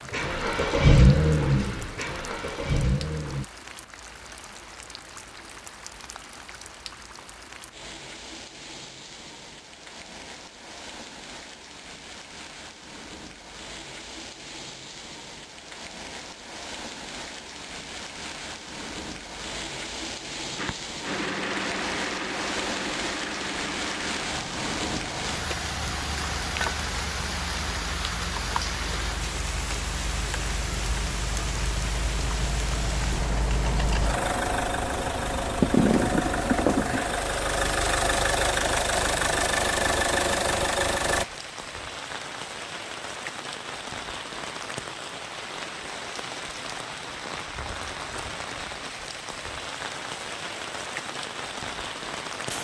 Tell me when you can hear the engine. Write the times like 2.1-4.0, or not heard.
0.0-3.5, 20.6-41.2.